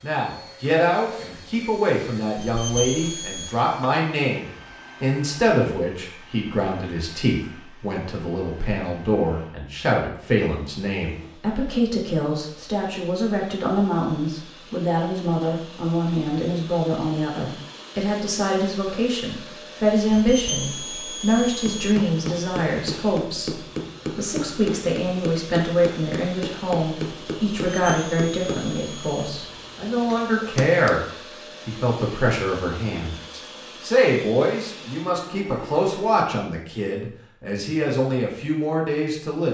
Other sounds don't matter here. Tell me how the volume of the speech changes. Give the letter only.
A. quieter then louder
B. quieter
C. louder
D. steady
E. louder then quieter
D.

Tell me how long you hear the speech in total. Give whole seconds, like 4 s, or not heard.
39 s.